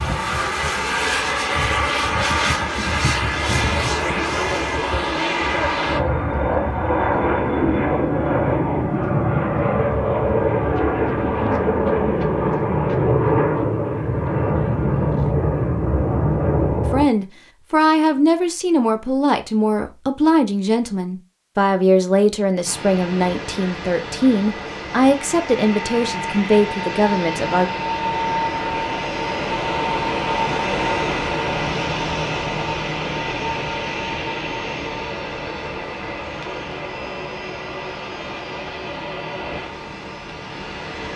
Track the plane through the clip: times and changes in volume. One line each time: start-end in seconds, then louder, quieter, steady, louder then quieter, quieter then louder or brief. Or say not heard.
0.0-17.1 steady
22.6-41.1 louder then quieter.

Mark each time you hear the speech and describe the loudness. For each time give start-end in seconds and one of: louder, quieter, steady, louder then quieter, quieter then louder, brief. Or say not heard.
16.9-27.7 steady.